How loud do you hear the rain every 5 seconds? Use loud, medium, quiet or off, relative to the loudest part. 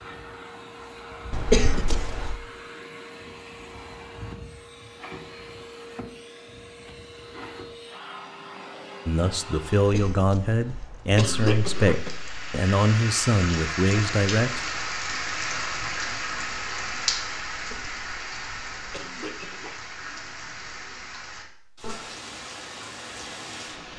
off, off, loud, loud, medium.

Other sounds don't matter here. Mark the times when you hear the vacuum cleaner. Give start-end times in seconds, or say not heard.
0.0-10.1.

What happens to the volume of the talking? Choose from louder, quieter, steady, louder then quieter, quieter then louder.
steady.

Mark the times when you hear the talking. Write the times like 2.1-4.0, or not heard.
9.1-14.7.